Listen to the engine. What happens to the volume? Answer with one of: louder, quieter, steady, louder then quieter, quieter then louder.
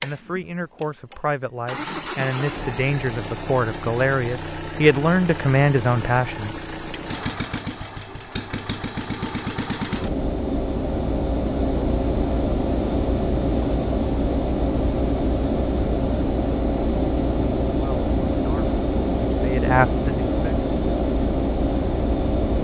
louder.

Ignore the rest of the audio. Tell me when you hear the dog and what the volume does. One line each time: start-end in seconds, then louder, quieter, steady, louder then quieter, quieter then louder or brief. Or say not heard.
not heard.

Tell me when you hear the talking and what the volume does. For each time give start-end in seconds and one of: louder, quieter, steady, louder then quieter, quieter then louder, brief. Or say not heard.
0.0-7.0 louder
17.8-20.3 brief.